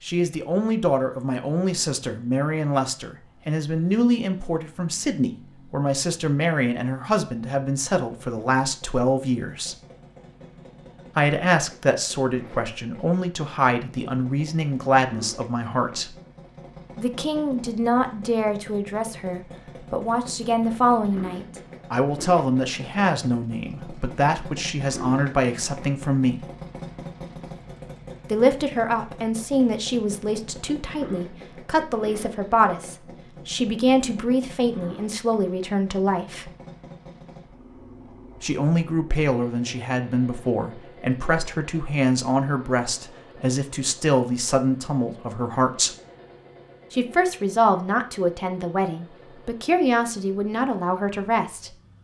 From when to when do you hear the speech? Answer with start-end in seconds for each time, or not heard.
0.0-9.8, 11.2-16.1, 16.9-26.4, 28.3-36.5, 38.4-46.0, 46.9-51.7.